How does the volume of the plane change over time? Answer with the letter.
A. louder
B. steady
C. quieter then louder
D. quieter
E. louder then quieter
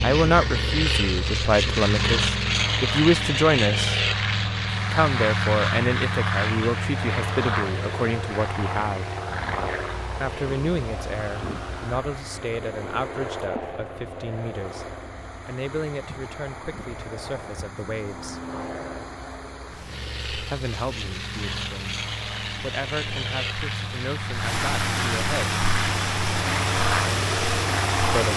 C.